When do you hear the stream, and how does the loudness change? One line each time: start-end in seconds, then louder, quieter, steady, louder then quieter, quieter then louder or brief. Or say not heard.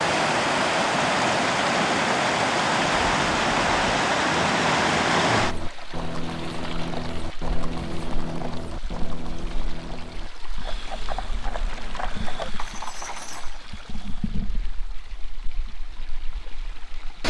0.0-17.2 quieter.